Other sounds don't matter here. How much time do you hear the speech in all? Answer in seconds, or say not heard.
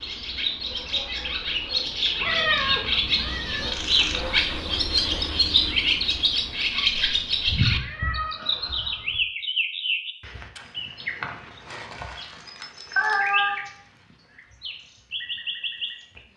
not heard.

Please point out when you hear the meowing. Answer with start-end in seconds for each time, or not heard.
2.2-3.7, 7.5-9.2, 12.9-13.6.